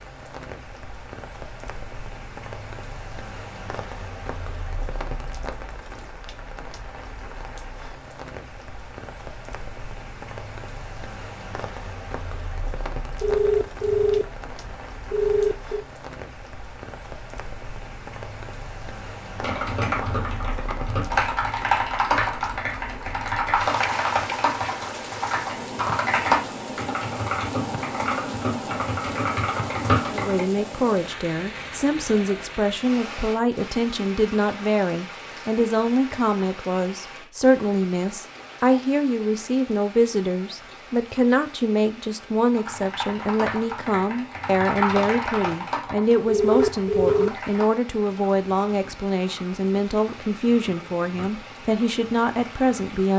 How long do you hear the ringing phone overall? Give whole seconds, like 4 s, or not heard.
4 s.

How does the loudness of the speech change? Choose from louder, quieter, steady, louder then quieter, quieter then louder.
steady.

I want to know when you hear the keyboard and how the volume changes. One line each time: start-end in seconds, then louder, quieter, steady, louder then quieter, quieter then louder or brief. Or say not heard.
19.4-30.4 steady
42.5-53.1 quieter.